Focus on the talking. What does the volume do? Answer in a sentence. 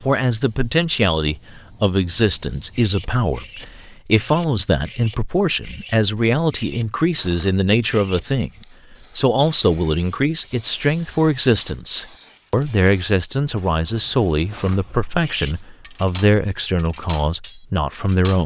The volume of the talking stays about the same.